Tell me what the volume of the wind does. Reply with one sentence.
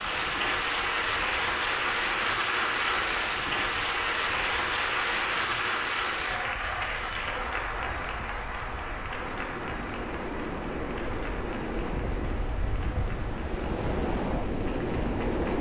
The volume of the wind goes up.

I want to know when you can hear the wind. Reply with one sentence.
The wind can be heard from 0.0 to 15.5 s.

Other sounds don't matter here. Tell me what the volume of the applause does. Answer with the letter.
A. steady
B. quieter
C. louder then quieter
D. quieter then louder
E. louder
B.